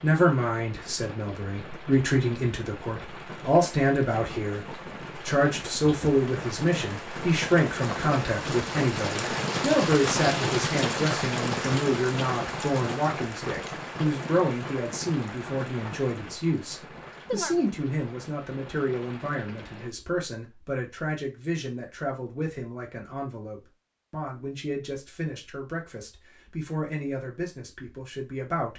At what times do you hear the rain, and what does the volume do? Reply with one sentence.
You can hear the rain from 0.0 to 19.9 s, getting louder then quieter.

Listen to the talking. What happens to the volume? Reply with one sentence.
The loudness of the talking goes down.